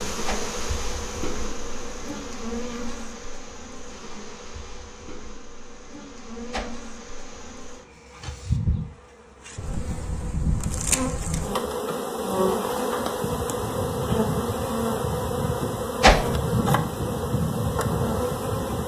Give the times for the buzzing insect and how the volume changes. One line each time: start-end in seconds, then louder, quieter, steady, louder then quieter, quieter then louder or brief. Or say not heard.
0.0-18.8 quieter then louder.